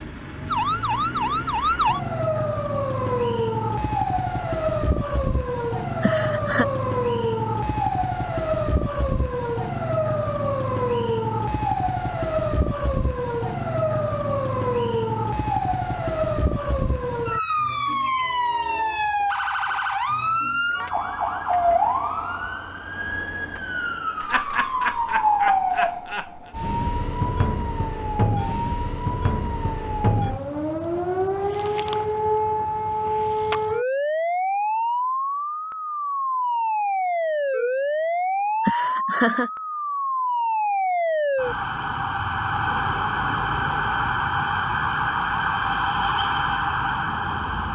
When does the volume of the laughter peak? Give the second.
39 s.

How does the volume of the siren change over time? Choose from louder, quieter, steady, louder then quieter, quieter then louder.
steady.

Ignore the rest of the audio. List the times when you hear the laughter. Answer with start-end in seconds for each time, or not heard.
6.0-6.7, 24.2-26.4, 38.6-39.5.